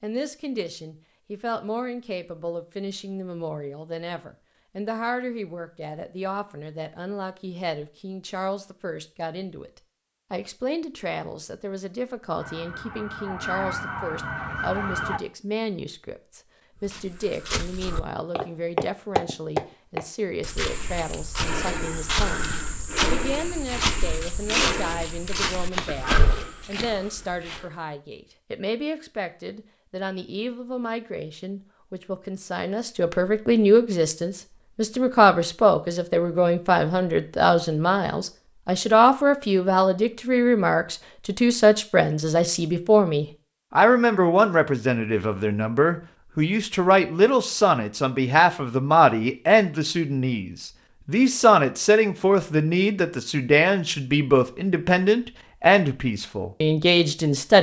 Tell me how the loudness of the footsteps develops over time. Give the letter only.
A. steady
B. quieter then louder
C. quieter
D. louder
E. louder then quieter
A.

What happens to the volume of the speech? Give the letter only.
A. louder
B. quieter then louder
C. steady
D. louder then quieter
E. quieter
A.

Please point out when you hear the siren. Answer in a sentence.
The siren can be heard from 12.3 to 15.2 s.